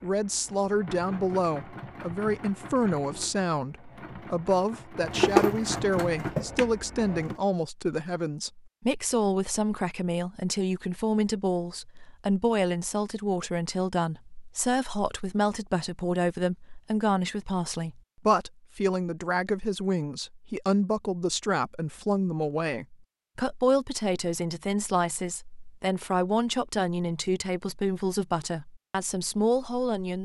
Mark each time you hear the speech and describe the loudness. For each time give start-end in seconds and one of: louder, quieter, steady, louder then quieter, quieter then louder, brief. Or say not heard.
0.0-30.2 steady.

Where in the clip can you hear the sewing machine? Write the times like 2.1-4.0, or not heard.
0.0-7.4.